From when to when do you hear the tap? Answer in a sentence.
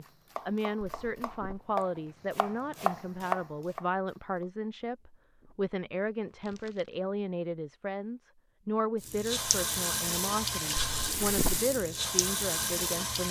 You can hear the tap from 9.0 to 13.2 s.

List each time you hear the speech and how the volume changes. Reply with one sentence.
You can hear the speech from 0.0 to 13.2 s, at a steady volume.